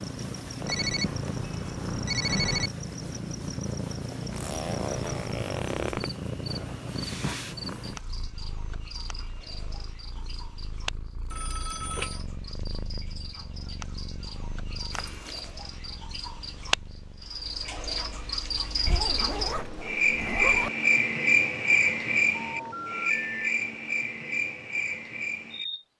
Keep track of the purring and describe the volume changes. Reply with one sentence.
The volume of the purring goes down.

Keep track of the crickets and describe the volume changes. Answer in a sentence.
The volume of the crickets goes up.